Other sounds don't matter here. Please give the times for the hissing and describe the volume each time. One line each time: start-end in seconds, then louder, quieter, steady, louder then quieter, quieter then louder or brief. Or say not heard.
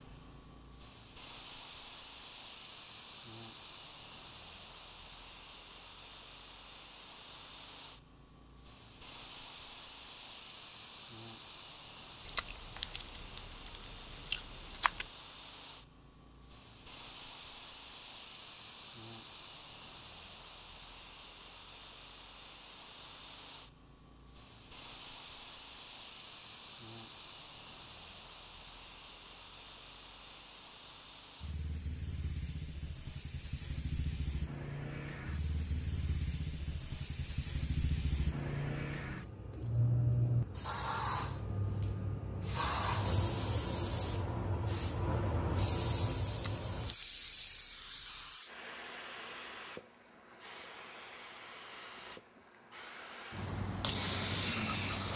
0.0-55.1 louder.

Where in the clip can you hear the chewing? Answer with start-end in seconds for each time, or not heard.
12.2-15.1, 46.3-48.4.